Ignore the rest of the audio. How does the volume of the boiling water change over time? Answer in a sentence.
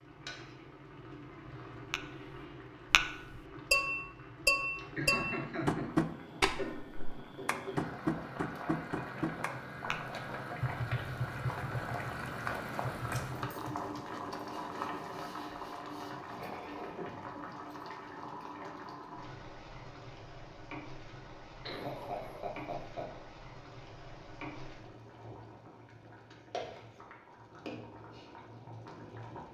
The volume of the boiling water goes up, then down.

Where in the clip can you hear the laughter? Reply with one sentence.
You can hear the laughter from 5.0 to 5.9 s and from 21.6 to 23.1 s.